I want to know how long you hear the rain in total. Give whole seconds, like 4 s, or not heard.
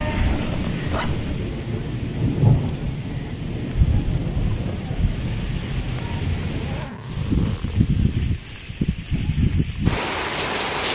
11 s.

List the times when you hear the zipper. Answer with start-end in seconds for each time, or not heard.
0.2-1.2, 6.4-8.0.